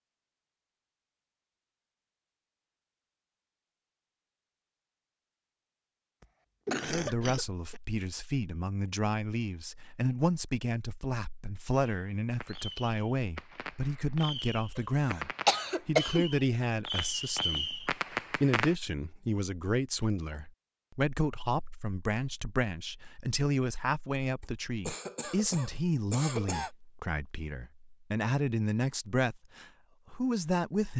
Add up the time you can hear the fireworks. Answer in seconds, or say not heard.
7 s.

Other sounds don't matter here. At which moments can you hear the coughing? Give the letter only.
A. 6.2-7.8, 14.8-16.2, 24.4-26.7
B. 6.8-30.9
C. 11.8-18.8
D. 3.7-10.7
A.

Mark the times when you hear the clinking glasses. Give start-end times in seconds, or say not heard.
not heard.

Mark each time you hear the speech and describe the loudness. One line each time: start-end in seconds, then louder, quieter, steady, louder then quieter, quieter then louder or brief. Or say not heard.
6.8-30.9 steady.